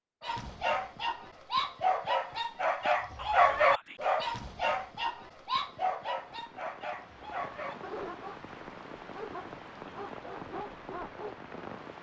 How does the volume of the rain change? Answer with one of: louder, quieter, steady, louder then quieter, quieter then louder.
louder.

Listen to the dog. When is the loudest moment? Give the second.
4 s.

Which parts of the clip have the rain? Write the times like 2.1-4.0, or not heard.
5.3-11.9.